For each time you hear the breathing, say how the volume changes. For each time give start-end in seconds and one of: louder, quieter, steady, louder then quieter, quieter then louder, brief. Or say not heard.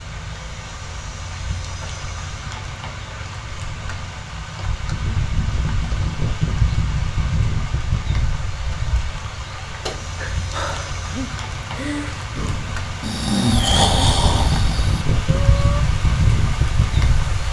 10.2-15.8 louder then quieter.